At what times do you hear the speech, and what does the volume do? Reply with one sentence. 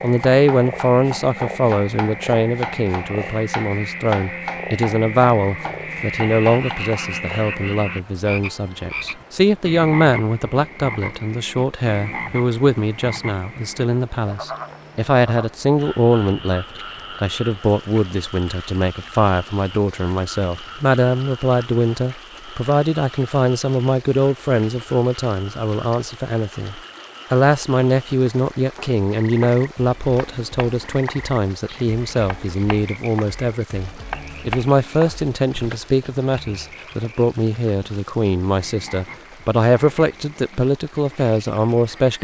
You can hear the speech from 0.0 to 42.1 s, at a steady volume.